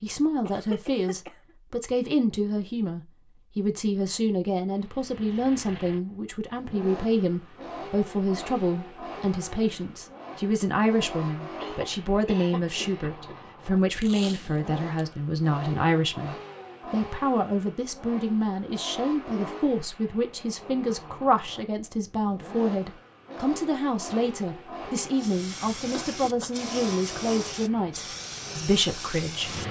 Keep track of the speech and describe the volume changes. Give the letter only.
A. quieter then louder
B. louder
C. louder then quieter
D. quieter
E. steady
E.